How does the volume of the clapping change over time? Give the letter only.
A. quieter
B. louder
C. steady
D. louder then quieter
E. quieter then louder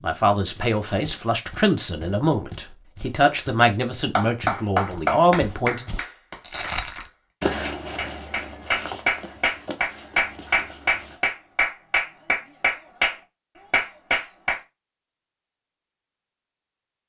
E.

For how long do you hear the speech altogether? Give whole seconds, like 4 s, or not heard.
6 s.